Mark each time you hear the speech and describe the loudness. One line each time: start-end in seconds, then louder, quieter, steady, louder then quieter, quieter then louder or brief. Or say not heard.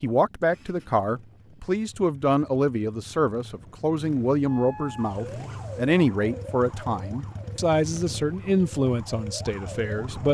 0.0-10.3 steady.